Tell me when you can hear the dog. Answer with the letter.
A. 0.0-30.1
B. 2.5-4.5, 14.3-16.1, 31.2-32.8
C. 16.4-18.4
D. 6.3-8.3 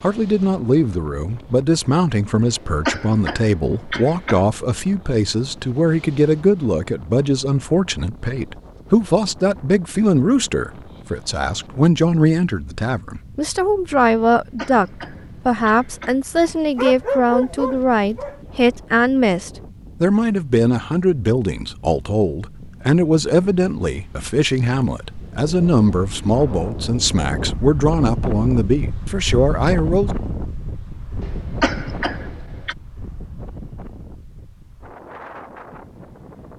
C.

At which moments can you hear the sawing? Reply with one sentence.
The sawing can't be heard in this clip.